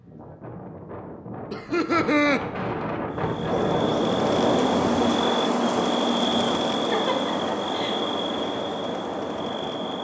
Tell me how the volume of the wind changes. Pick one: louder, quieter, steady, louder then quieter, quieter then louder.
louder then quieter.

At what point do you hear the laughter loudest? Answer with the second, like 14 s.
2 s.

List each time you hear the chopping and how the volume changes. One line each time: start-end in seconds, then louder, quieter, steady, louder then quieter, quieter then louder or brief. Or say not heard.
not heard.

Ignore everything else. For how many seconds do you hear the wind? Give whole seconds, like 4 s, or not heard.
10 s.